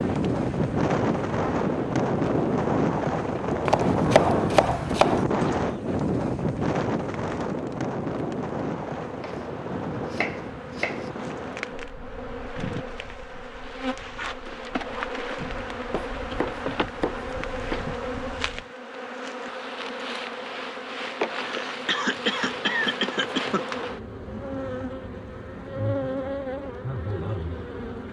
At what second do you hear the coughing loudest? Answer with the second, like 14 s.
23 s.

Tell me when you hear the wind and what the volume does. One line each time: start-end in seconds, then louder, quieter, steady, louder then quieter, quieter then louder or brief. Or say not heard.
0.0-18.6 quieter.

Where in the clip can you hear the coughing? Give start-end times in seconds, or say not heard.
21.2-23.9.